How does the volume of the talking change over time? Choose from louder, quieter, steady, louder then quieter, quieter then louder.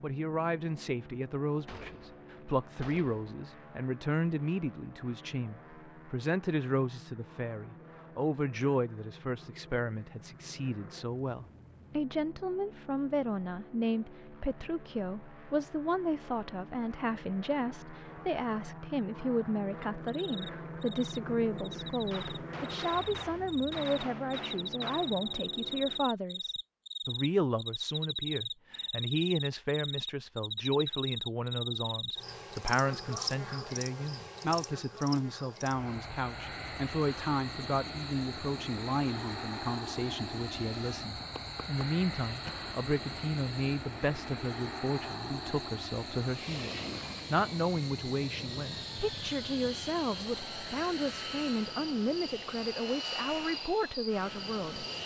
steady.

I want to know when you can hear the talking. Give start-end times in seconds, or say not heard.
0.0-54.9.